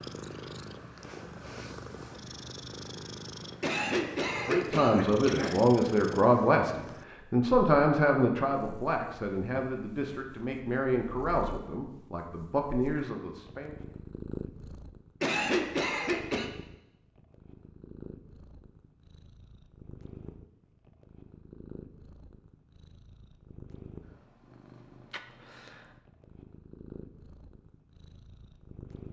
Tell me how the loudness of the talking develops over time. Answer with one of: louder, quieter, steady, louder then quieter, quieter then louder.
quieter.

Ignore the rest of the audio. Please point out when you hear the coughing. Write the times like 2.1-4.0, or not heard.
3.6-5.6, 15.2-16.5.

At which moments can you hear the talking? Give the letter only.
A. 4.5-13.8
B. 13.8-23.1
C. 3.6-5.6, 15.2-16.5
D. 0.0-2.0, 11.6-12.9
A.